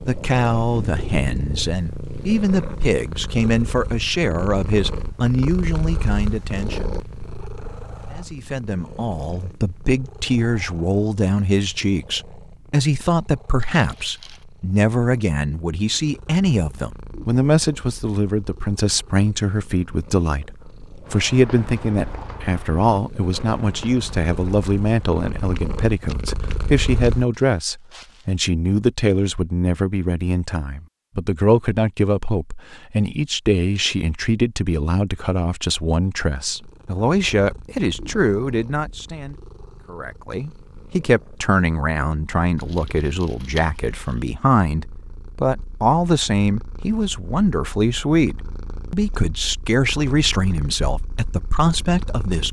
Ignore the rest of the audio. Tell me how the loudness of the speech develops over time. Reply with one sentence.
The loudness of the speech stays about the same.